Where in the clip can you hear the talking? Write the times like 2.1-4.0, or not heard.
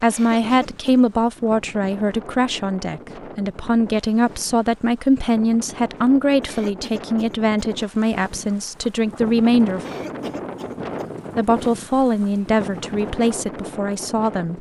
0.0-9.8, 11.3-14.5.